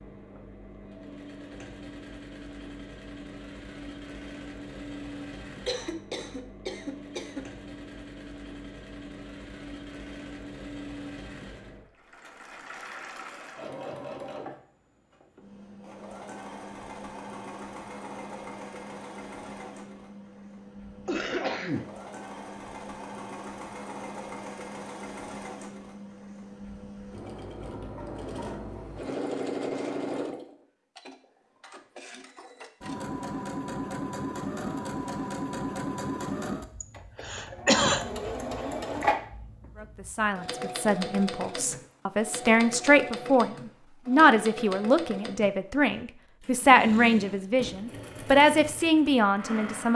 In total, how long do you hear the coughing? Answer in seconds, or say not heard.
4 s.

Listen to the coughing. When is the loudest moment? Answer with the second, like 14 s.
38 s.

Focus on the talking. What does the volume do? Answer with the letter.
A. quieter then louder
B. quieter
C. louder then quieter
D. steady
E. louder
E.